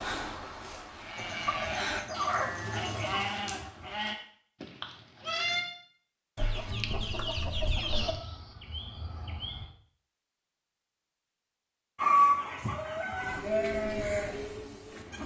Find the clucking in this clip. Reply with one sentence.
The clucking can be heard from 1.1 to 3.3 s, from 6.3 to 8.1 s and from 11.9 to 13.4 s.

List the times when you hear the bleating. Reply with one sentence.
You can hear the bleating from 0.0 to 5.7 s, from 7.9 to 9.7 s and from 13.2 to 15.2 s.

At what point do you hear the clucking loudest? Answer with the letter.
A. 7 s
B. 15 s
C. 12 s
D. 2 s
C.